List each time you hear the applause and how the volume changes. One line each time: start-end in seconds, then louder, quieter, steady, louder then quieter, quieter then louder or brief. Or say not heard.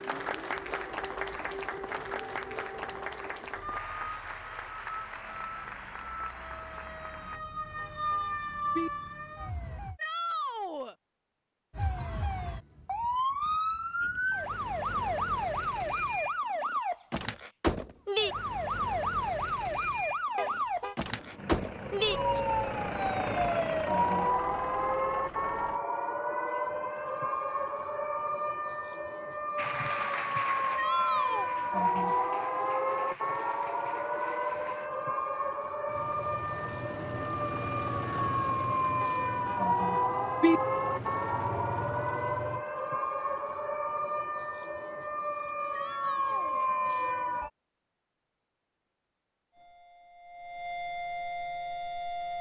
0.0-7.4 quieter
29.6-34.9 quieter.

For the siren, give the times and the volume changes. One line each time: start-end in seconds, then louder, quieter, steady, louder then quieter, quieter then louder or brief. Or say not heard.
0.0-10.0 louder
11.8-47.5 steady
49.5-52.3 brief.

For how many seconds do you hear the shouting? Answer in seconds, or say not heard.
3 s.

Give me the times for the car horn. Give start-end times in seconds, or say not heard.
7.3-8.9, 20.4-20.9, 39.0-40.6.